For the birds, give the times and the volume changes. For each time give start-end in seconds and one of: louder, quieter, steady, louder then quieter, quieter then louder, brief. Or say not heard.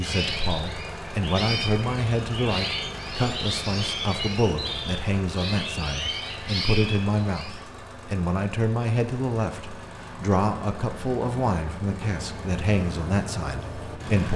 0.0-7.7 steady.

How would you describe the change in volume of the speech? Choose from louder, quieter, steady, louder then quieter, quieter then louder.
steady.